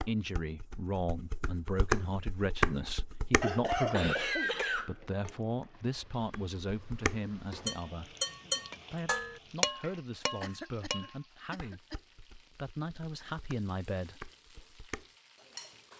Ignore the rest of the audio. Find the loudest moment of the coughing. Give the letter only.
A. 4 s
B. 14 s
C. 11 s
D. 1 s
A.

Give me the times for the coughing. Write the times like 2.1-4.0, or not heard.
3.4-5.3, 10.4-12.0.